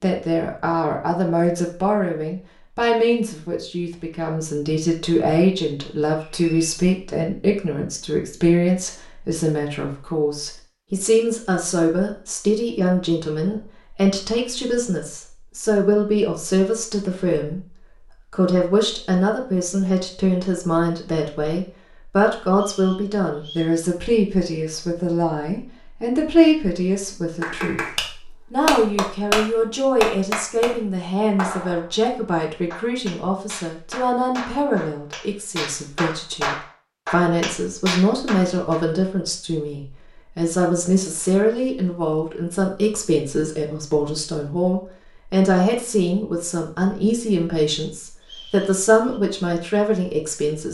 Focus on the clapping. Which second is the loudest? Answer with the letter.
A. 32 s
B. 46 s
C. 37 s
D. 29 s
D.